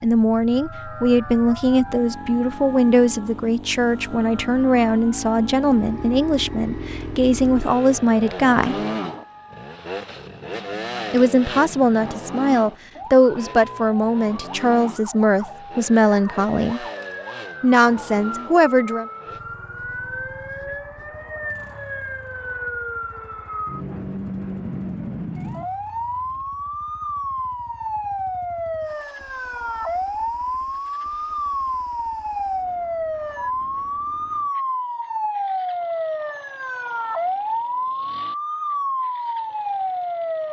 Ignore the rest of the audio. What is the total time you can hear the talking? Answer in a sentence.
You can hear the talking for 16 seconds altogether.